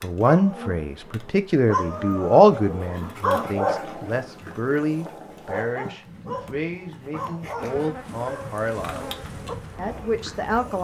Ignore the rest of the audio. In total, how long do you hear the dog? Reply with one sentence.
The dog can be heard for 11 seconds in total.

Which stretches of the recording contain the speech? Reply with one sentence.
The speech can be heard from 0.0 to 9.1 s and from 9.8 to 10.7 s.